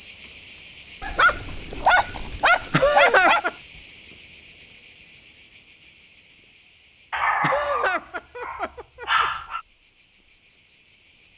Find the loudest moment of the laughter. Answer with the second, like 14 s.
3 s.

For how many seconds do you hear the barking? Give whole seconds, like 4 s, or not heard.
5 s.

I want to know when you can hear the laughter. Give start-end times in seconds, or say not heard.
2.7-3.5, 7.4-9.2.